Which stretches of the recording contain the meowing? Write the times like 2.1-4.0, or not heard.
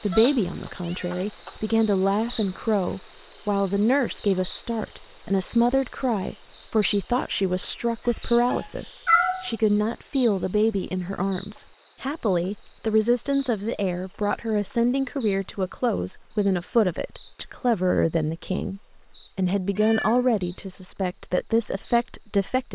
0.1-1.1, 8.5-9.5, 19.8-20.6.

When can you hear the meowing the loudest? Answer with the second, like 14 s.
9 s.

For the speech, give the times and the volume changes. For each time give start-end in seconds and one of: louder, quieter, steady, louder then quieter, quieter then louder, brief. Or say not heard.
0.0-22.7 steady.